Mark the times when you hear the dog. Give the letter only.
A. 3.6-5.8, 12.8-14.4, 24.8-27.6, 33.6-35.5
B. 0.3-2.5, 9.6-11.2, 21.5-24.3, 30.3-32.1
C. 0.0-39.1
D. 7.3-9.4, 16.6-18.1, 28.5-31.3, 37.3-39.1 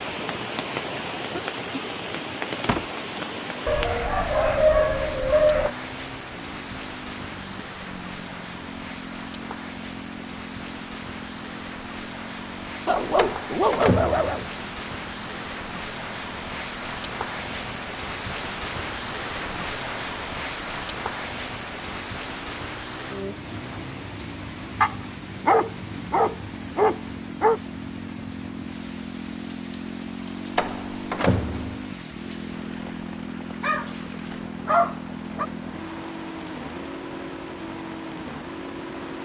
A.